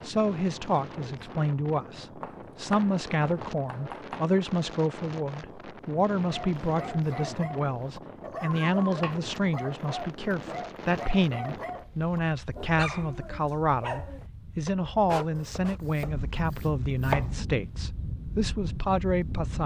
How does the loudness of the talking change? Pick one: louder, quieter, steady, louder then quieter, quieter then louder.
steady.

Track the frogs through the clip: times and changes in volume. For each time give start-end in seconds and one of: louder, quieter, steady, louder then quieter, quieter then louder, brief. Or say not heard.
not heard.